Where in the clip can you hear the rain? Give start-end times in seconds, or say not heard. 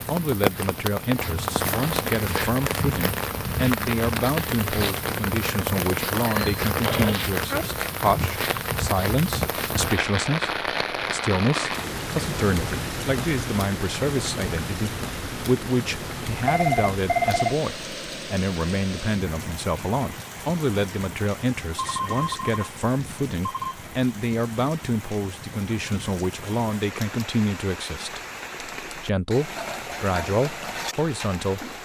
0.0-31.8.